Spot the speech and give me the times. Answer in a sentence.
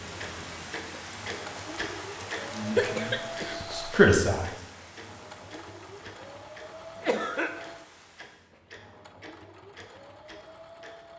The speech can be heard from 2.4 to 4.7 s.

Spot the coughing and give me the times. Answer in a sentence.
The coughing can be heard from 2.8 to 3.8 s and from 7.0 to 7.5 s.